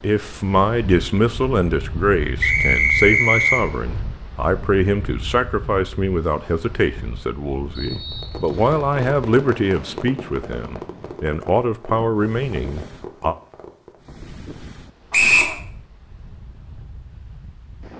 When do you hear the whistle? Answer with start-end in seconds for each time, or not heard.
2.4-3.6, 7.8-8.8, 15.1-15.6.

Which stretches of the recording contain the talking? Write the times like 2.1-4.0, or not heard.
0.0-13.3.